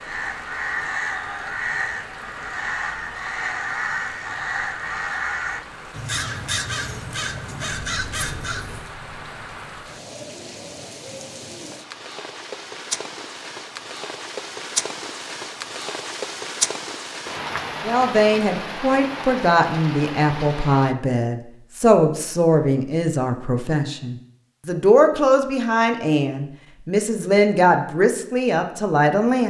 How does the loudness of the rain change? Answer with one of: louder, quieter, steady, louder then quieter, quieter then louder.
louder.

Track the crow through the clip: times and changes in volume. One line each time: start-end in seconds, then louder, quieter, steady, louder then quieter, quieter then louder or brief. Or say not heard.
0.0-8.9 steady.